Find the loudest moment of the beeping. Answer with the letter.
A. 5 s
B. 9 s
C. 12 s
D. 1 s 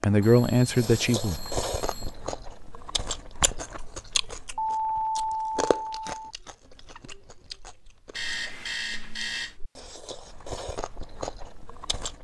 A.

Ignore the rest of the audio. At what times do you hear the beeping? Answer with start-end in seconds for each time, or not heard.
0.2-2.1, 4.5-6.2, 8.2-9.5.